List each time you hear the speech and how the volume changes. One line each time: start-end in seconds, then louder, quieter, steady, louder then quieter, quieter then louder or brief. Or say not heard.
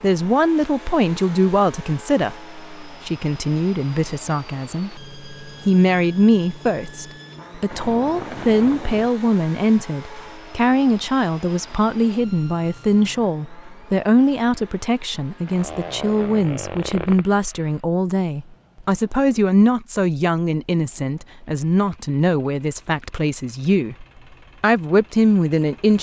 0.0-25.9 steady.